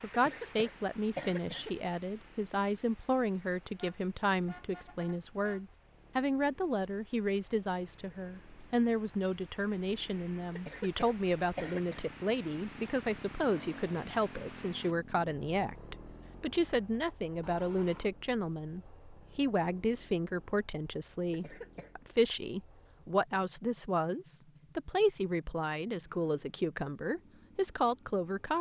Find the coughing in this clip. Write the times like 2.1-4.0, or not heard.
0.1-1.8, 10.6-12.1, 21.3-21.9.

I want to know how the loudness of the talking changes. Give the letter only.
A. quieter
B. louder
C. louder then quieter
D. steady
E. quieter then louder
D.